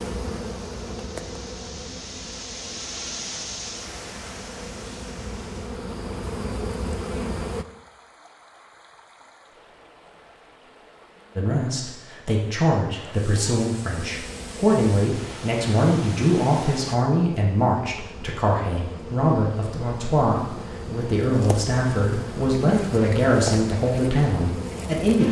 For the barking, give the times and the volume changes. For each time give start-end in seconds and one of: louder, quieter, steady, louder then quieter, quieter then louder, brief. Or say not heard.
not heard.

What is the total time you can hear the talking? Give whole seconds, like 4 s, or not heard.
14 s.